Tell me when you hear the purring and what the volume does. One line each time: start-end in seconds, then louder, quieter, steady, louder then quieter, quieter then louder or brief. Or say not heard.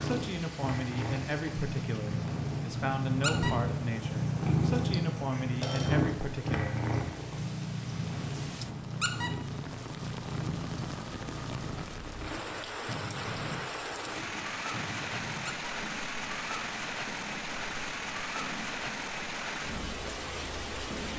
0.0-21.1 quieter.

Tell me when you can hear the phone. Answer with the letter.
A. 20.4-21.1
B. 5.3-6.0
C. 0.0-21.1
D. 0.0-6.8
B.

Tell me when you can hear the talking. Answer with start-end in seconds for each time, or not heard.
0.0-6.8.